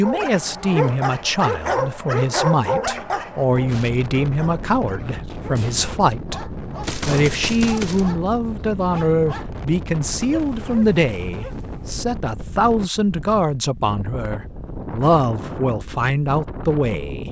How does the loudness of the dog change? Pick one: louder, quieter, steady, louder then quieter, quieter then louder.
quieter.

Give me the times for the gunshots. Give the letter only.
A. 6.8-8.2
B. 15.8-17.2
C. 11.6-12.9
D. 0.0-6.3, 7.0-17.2
A.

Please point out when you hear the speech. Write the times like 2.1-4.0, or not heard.
0.0-6.3, 7.0-17.2.